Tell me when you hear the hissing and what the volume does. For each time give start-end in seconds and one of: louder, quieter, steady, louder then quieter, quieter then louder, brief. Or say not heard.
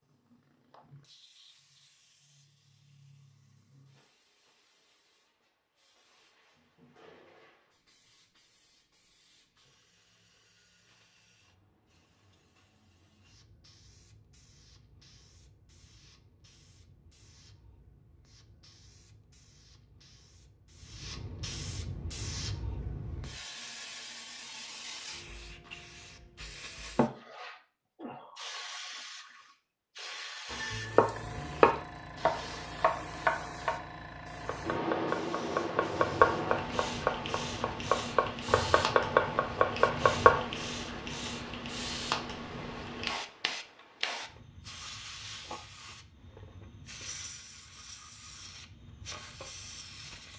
0.0-50.3 louder.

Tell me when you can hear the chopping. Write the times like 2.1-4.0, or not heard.
30.5-40.5.